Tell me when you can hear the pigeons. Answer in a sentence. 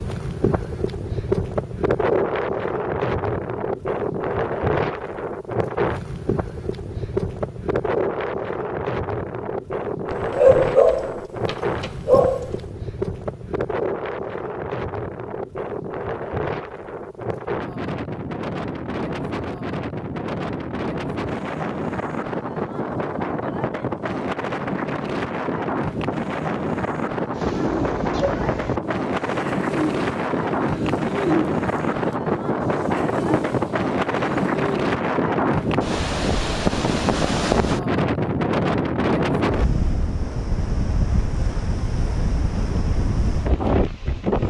You can hear the pigeons from 27.4 to 34.8 s.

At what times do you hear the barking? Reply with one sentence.
You can hear the barking from 10.1 to 12.6 s.